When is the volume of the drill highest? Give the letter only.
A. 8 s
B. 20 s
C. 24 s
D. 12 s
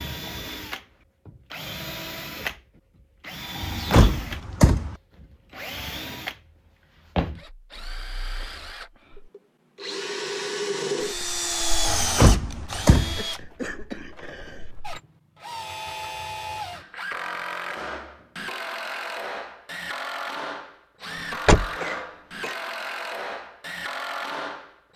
D.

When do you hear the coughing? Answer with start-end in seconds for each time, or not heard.
3.9-4.5, 12.8-14.7, 21.1-22.6.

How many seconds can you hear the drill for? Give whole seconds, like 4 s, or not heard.
25 s.